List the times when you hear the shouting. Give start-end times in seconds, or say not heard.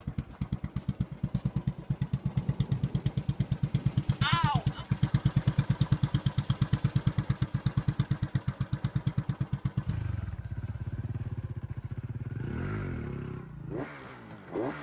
4.2-4.8.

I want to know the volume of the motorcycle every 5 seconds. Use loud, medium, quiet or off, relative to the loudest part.
loud, loud, medium.